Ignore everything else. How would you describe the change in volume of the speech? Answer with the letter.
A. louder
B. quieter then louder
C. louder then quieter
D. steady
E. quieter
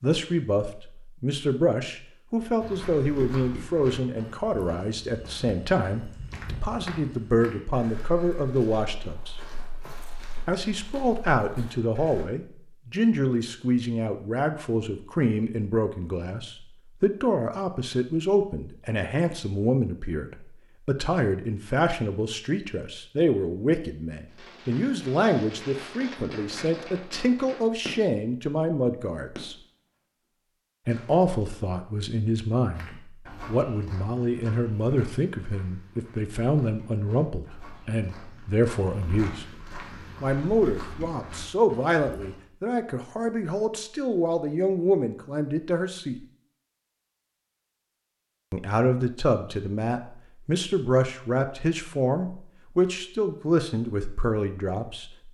D.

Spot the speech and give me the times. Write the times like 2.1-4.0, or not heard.
0.0-9.4, 10.4-29.6, 30.9-39.5, 40.2-46.2, 48.5-55.2.